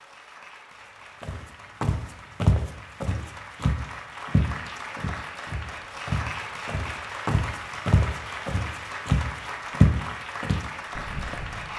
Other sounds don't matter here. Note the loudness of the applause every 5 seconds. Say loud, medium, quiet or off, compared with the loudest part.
medium, loud, loud.